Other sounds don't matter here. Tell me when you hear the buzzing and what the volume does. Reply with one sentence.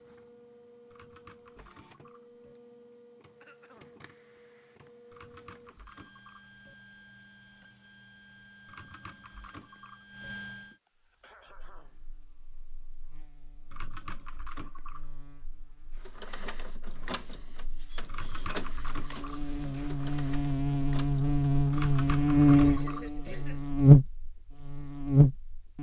You can hear the buzzing from 11.0 to 25.7 s, getting louder.